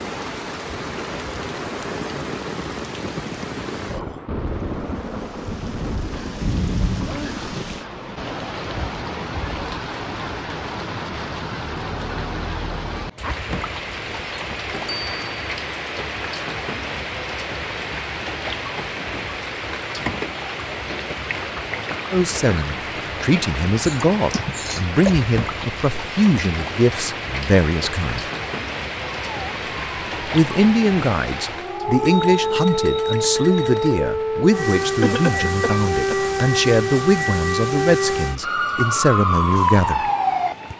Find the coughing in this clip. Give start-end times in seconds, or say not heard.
6.4-7.2, 23.9-25.1, 35.0-36.1.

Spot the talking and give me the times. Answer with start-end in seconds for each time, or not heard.
22.1-28.2, 30.3-40.1.